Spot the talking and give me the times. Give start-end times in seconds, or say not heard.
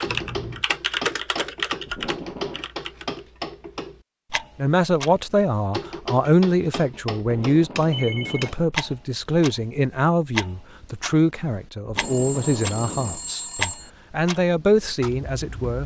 4.5-15.8.